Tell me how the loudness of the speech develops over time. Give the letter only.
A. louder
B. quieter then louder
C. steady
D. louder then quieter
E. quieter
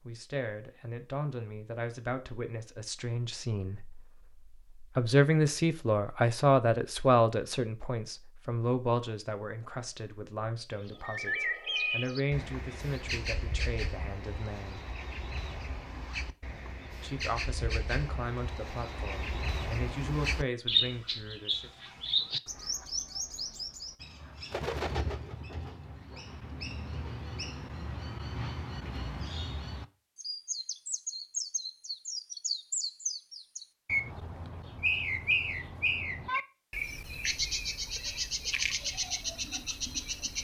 D.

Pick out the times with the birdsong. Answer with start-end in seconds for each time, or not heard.
10.8-40.3.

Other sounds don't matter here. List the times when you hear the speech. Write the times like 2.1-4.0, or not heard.
0.0-14.8, 16.9-21.7.